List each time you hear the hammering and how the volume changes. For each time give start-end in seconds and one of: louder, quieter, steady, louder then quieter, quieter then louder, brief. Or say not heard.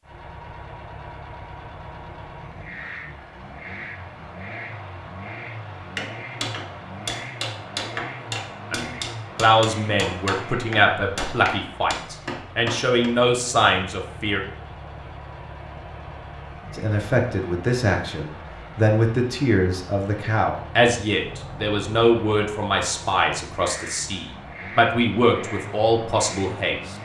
6.0-13.1 steady.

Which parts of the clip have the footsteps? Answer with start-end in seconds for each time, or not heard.
not heard.